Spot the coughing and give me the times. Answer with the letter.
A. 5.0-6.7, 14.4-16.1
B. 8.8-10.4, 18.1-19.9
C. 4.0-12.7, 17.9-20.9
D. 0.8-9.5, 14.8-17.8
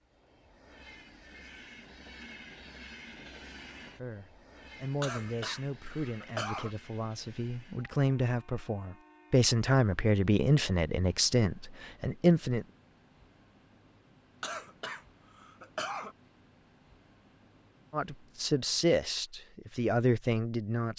A.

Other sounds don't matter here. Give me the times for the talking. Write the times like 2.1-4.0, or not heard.
4.0-12.7, 17.9-20.9.